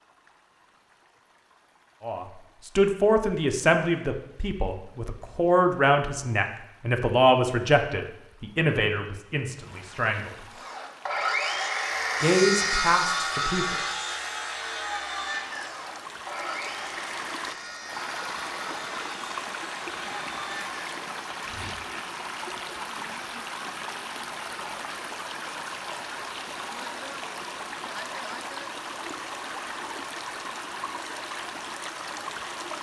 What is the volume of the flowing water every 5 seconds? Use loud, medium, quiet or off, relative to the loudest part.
quiet, quiet, quiet, loud, loud, loud, loud.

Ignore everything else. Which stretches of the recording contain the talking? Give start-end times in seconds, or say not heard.
2.0-10.4, 12.2-13.8.